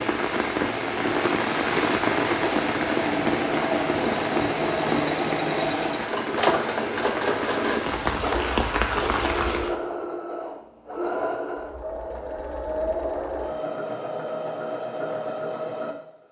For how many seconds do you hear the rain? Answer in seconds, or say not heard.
10 s.